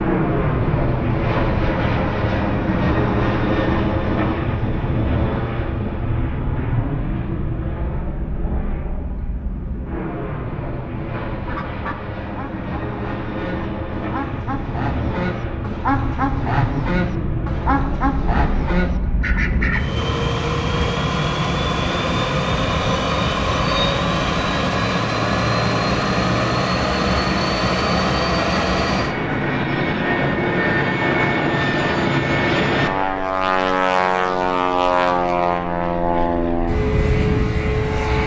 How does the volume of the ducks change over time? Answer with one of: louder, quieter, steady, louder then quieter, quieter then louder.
louder.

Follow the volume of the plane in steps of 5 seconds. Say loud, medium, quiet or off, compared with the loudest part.
loud, medium, medium, medium, loud, loud, loud, loud.